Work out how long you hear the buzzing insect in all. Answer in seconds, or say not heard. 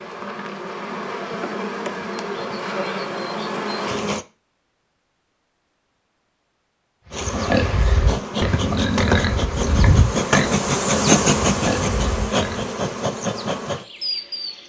12 s.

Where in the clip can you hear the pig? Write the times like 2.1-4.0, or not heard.
7.1-12.7.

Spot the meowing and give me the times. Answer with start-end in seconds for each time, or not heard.
not heard.